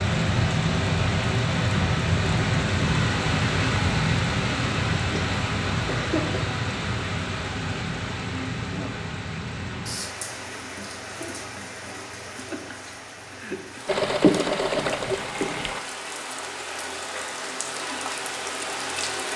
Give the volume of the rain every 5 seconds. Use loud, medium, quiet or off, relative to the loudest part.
loud, medium, quiet, medium.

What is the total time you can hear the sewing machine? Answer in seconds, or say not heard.
2 s.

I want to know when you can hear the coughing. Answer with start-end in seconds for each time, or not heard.
5.1-6.5.